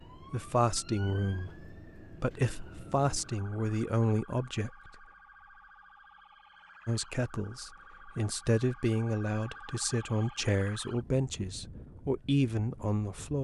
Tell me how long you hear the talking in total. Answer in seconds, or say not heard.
11 s.